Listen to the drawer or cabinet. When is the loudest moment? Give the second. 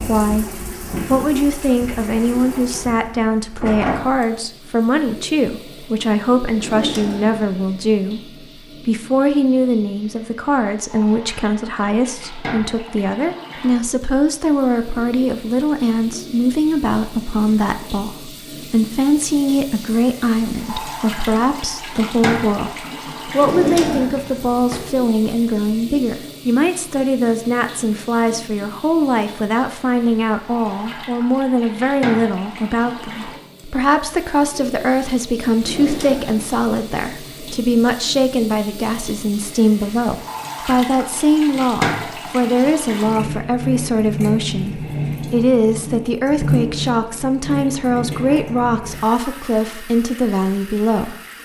24 s.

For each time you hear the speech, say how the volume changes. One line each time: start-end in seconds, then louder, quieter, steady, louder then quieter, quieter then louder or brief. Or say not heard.
0.1-51.2 steady.